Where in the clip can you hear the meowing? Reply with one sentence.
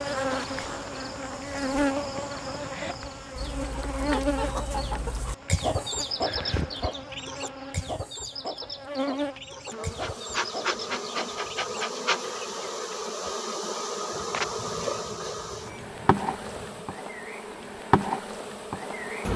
You can hear the meowing from 6.2 to 7.0 s and from 14.1 to 16.9 s.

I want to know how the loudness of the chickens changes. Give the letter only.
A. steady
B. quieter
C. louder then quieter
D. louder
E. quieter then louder
C.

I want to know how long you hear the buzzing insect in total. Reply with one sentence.
You can hear the buzzing insect for 19 seconds altogether.